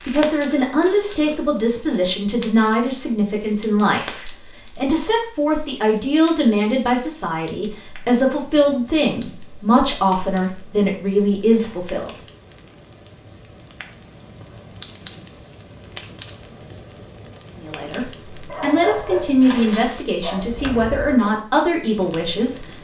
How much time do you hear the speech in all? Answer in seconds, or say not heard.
17 s.